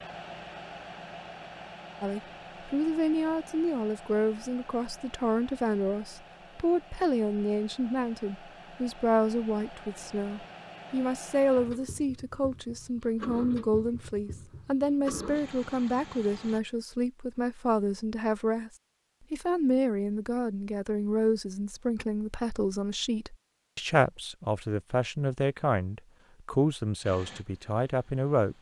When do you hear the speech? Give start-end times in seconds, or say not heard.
2.0-18.7, 19.3-28.5.